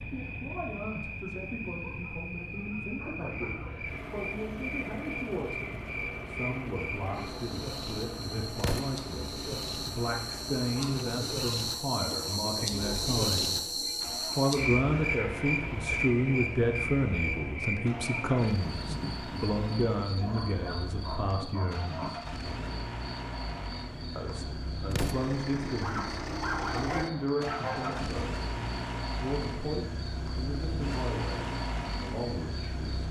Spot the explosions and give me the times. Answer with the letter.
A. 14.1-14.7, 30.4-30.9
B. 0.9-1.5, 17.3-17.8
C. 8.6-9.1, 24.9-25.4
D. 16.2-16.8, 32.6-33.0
C.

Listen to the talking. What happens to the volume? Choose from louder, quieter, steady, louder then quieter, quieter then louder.
louder then quieter.